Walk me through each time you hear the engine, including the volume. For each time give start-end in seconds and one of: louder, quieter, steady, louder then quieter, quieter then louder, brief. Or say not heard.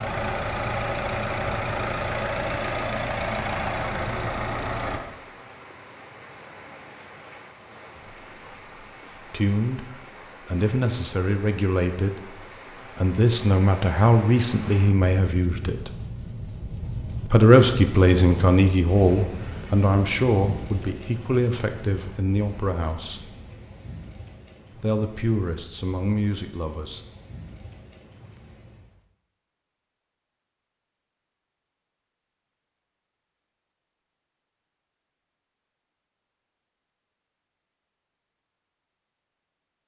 0.0-5.0 steady.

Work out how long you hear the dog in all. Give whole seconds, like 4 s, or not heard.
not heard.